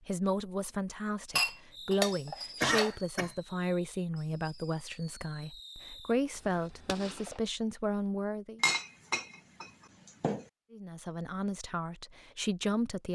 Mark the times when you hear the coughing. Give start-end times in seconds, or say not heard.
2.6-3.3.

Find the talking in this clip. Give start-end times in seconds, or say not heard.
0.1-8.6, 10.7-13.1.